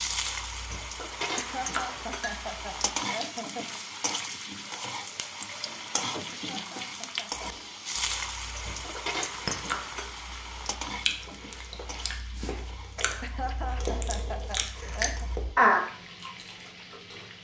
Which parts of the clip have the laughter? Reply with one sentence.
The laughter can be heard from 1.4 to 3.8 s, from 6.3 to 7.5 s and from 13.2 to 15.3 s.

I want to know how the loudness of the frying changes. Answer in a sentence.
The loudness of the frying goes down.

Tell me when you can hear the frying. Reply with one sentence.
The frying can be heard from 0.0 to 17.3 s.